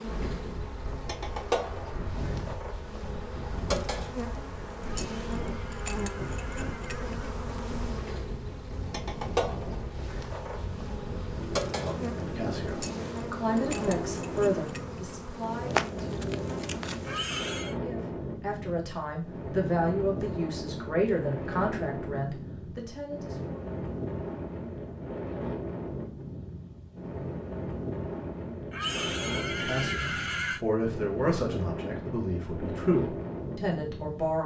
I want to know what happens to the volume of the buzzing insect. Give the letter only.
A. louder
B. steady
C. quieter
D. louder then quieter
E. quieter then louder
B.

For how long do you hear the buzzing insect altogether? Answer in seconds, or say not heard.
17 s.